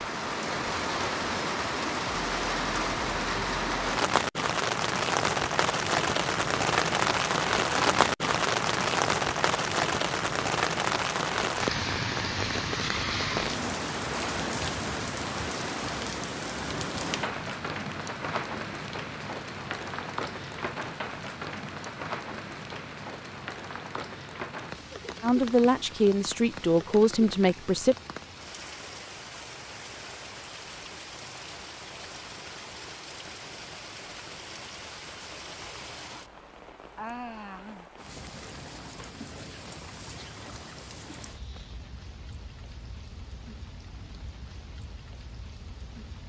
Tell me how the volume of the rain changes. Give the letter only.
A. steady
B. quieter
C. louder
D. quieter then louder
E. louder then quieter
B.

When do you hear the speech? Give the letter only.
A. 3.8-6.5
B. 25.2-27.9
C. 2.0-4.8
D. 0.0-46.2
B.